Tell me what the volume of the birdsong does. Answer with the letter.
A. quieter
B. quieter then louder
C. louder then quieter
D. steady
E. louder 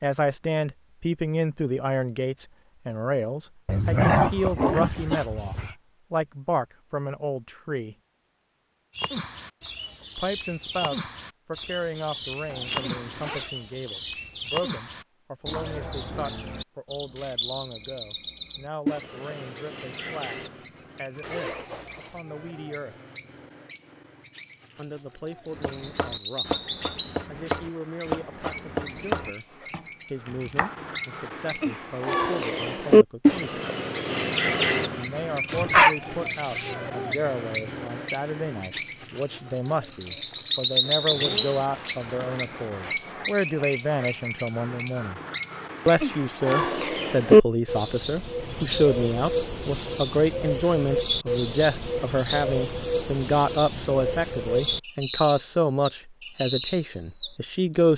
E.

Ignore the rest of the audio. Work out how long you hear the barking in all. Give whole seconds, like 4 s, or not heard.
3 s.